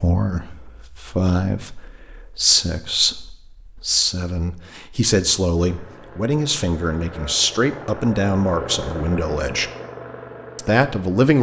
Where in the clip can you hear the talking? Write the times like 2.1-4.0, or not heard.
0.0-9.7, 10.6-11.3.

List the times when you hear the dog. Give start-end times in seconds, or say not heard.
not heard.